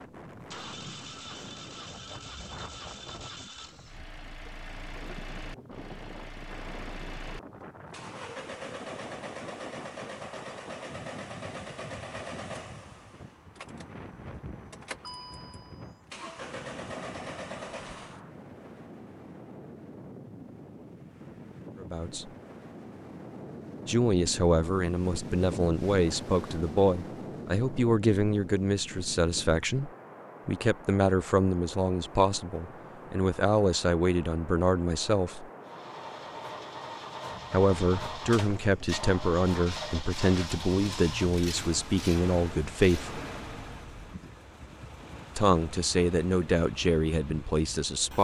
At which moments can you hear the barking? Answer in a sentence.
You can't hear the barking here.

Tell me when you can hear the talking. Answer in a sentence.
You can hear the talking from 21.8 to 22.3 s, from 23.9 to 35.5 s, from 37.5 to 43.1 s and from 45.4 to 48.2 s.